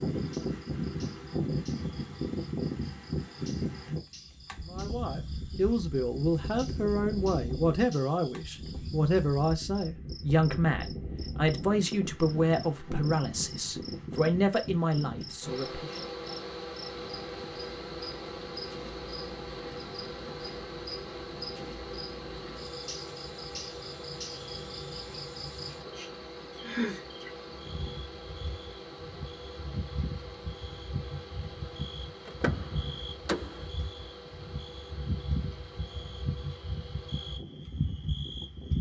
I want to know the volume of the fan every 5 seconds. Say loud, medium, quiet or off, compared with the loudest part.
loud, medium, medium, medium, medium, medium, quiet, quiet.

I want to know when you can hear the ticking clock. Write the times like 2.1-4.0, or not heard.
not heard.